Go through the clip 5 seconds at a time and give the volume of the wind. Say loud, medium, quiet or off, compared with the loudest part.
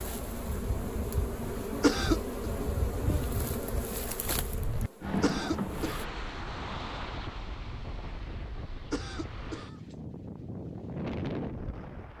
medium, loud, loud.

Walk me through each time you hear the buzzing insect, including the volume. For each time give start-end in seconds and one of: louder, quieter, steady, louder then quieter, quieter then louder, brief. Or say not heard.
0.0-6.0 quieter.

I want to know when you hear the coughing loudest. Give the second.
2 s.